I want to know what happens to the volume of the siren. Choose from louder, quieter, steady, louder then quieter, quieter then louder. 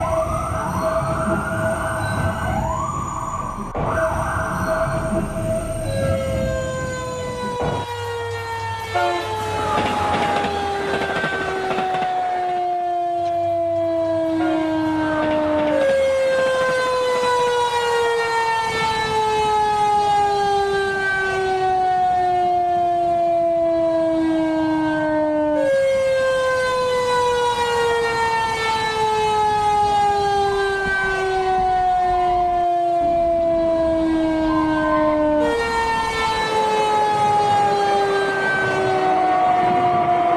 louder.